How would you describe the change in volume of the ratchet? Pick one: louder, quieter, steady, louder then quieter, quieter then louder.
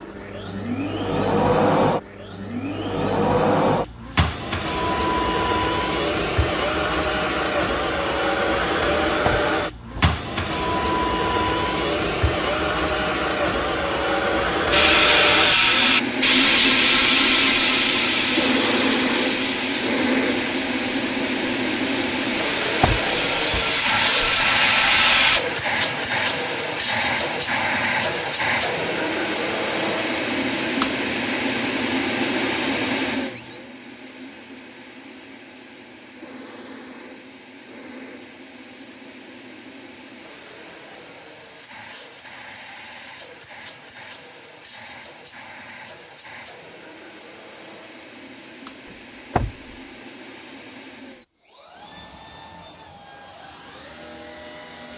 quieter then louder.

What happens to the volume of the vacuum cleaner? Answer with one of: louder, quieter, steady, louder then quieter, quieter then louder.
quieter.